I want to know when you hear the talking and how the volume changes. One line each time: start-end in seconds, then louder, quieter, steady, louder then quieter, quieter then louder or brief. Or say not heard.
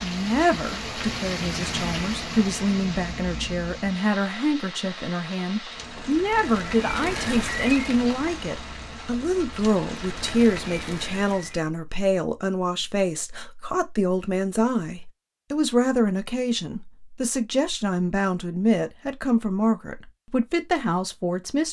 0.0-21.6 steady.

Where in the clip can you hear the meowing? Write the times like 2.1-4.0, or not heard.
not heard.